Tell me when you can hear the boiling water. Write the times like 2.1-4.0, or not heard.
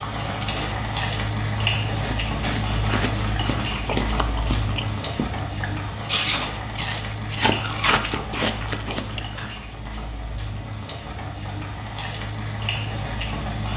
0.0-13.7.